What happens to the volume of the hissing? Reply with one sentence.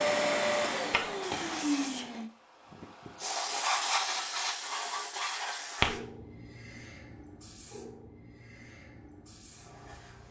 The volume of the hissing goes up, then down.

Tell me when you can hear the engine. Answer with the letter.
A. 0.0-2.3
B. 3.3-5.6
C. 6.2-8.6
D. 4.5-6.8
A.